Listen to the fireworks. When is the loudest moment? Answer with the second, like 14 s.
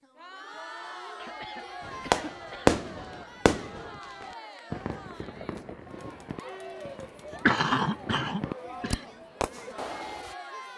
3 s.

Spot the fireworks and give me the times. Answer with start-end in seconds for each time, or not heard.
1.8-10.3.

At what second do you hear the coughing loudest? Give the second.
8 s.